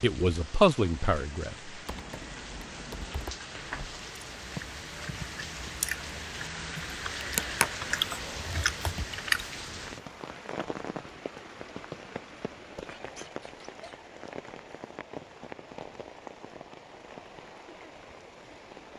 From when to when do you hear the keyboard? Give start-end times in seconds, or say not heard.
1.9-3.4.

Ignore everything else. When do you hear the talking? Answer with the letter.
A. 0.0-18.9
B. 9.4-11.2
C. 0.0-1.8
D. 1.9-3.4
C.